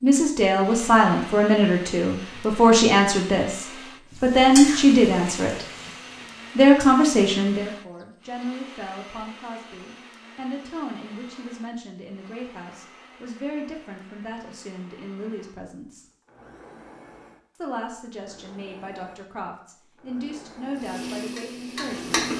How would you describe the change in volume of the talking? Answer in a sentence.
The loudness of the talking goes down.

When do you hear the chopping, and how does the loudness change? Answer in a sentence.
The chopping can't be heard in this clip.